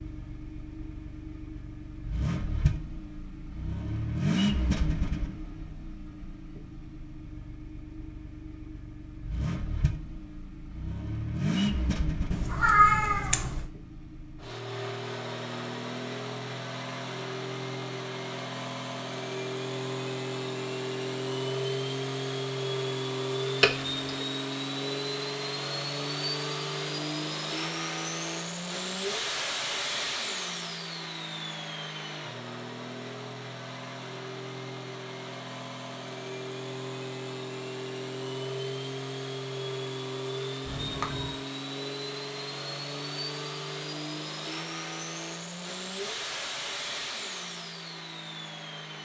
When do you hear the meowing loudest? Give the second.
13 s.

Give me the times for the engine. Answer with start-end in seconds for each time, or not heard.
0.0-49.0.